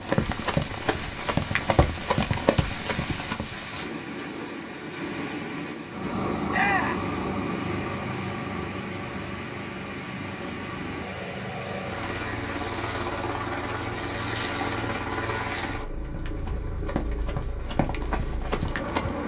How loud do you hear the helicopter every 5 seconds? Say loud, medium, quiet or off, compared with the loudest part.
off, loud, loud, loud.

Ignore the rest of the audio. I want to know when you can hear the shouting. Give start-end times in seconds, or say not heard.
6.5-7.0.